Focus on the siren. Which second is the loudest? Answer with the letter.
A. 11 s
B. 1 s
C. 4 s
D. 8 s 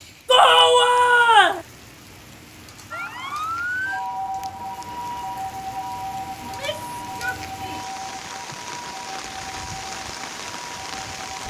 C.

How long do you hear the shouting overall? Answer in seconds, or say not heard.
3 s.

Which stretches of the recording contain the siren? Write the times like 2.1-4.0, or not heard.
2.9-11.4.